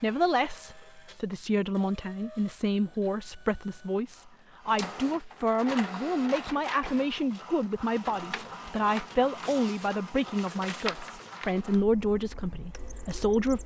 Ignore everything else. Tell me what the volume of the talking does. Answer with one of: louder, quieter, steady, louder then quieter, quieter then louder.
steady.